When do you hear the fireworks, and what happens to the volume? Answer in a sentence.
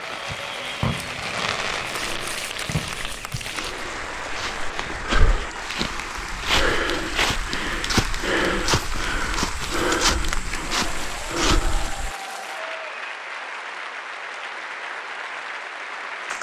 You can hear the fireworks from 0.0 to 4.9 s, getting quieter.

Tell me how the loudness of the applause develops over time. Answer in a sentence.
The loudness of the applause stays about the same.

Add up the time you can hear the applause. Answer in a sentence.
The applause can be heard for 16 seconds in total.